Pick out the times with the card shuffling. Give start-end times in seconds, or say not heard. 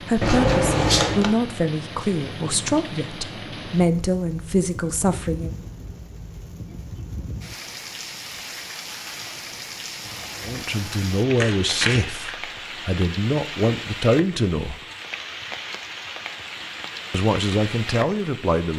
0.2-1.3, 10.1-12.3.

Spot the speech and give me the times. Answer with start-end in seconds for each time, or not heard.
0.1-5.5, 10.4-14.8, 17.1-18.7.